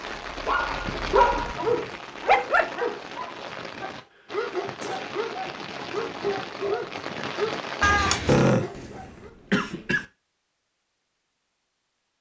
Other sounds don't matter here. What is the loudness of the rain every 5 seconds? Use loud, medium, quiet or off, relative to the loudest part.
loud, loud, off.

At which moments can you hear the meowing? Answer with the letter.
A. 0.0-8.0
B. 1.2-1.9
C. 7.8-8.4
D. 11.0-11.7
C.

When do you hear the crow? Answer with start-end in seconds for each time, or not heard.
not heard.